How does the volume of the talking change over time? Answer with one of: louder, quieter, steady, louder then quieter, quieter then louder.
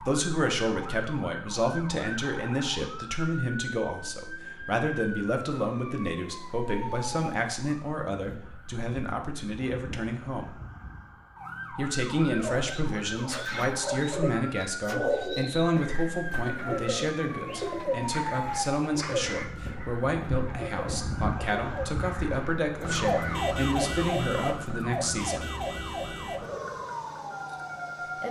steady.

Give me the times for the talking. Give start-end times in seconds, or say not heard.
0.0-10.6, 11.7-25.4.